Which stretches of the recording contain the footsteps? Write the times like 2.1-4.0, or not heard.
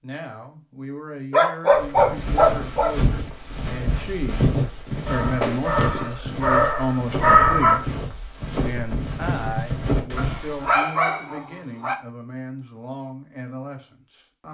1.7-10.8.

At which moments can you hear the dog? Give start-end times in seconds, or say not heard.
1.3-3.1, 5.0-7.8, 10.2-11.9.